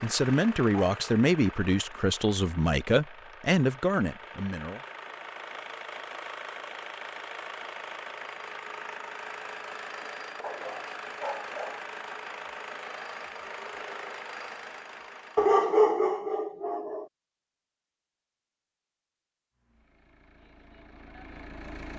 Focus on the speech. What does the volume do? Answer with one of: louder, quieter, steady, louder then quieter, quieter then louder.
steady.